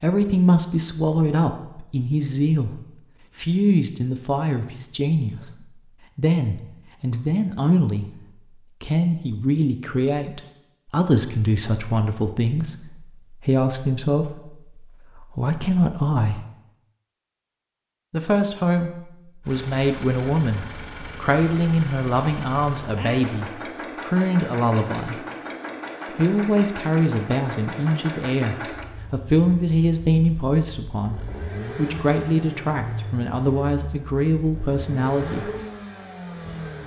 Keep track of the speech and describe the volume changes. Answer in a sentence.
The volume of the speech stays about the same.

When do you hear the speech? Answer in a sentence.
You can hear the speech from 0.0 to 8.1 s, from 8.8 to 16.4 s, from 18.1 to 25.2 s and from 26.1 to 35.5 s.